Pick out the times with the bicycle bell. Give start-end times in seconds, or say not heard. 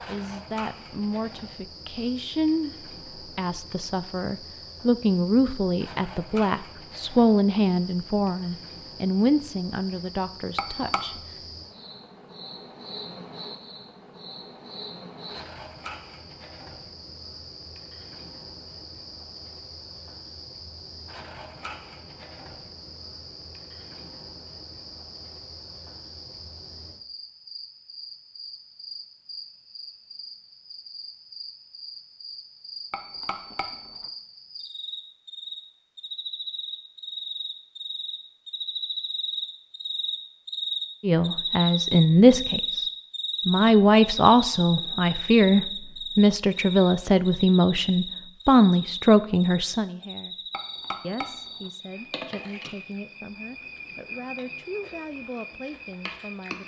10.6-11.2, 32.9-34.1, 50.5-51.7.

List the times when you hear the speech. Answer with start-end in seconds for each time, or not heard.
0.0-11.4, 41.0-42.8, 43.5-50.4, 51.0-56.6.